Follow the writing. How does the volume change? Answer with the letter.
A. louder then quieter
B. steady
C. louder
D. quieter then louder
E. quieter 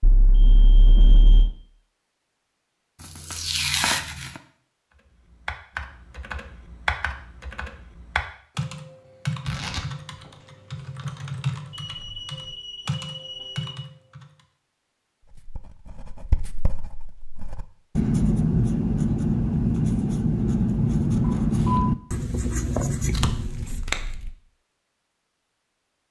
A.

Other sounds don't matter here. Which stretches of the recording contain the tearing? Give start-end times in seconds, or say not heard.
3.0-4.4, 9.4-10.3, 23.1-24.3.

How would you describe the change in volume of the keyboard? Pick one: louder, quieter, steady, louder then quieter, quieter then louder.
steady.